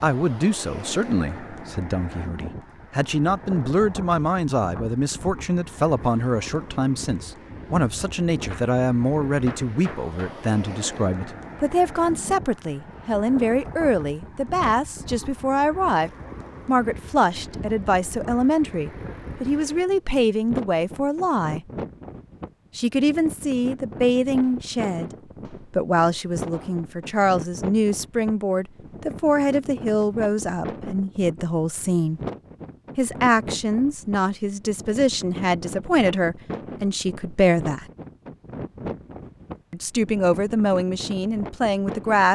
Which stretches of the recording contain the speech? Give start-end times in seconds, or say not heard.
0.0-21.6, 22.8-32.2, 33.0-37.9, 39.7-42.3.